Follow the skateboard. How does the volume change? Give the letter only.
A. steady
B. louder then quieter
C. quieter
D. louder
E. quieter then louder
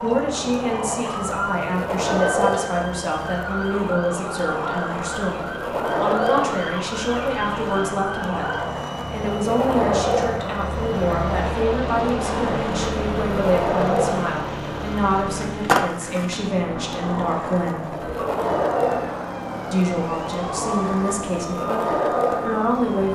A.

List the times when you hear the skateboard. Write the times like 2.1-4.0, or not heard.
0.0-23.1.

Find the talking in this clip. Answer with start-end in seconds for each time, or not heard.
0.0-17.9, 19.7-23.1.